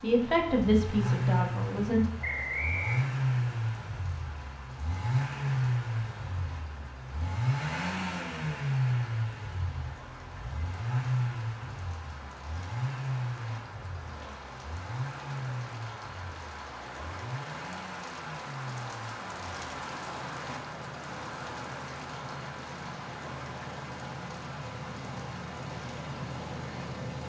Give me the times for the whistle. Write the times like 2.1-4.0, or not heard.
2.2-3.0.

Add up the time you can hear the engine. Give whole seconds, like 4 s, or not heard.
27 s.